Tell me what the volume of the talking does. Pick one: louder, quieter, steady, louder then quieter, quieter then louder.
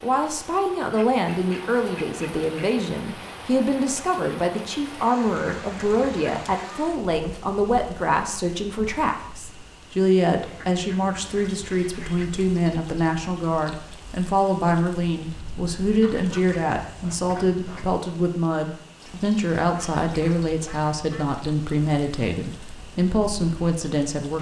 steady.